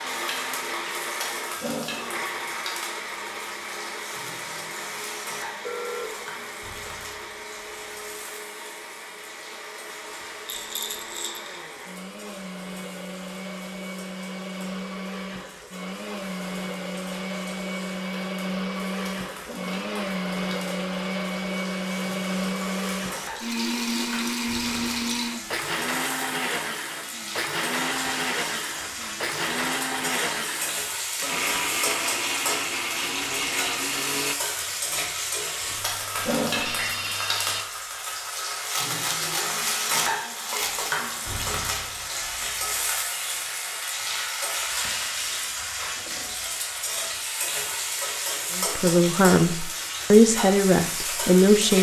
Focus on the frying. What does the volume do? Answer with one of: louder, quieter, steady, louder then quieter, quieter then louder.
quieter then louder.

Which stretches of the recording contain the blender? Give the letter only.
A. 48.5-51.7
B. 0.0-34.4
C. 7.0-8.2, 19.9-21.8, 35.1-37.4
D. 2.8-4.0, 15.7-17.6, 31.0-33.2
B.